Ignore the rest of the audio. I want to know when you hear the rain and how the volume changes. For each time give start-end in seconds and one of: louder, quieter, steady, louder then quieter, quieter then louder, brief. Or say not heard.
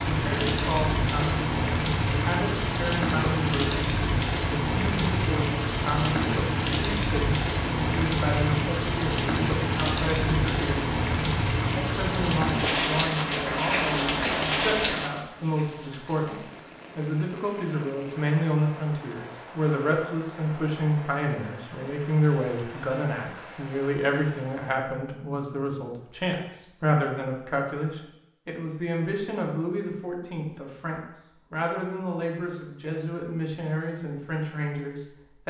0.0-24.8 quieter.